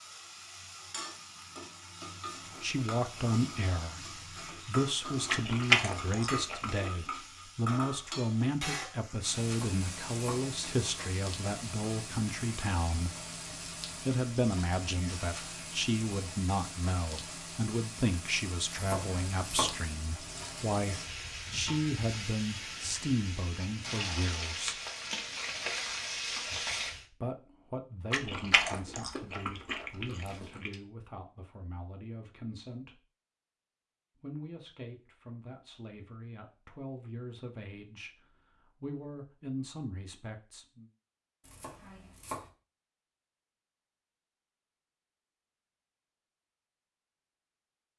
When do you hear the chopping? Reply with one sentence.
You can hear the chopping from 9.4 to 10.4 s, from 18.7 to 19.8 s and from 41.4 to 42.5 s.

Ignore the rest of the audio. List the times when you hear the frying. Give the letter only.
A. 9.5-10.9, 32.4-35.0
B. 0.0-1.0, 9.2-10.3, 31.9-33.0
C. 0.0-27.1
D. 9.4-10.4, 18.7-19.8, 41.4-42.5
C.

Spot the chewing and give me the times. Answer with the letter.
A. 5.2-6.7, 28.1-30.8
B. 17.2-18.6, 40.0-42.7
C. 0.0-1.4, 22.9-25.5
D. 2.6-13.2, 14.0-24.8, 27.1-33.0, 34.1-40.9
A.